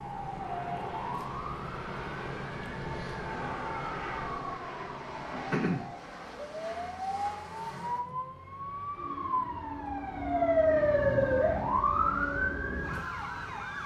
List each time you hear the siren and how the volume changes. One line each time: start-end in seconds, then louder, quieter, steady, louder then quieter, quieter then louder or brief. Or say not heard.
0.0-13.8 louder.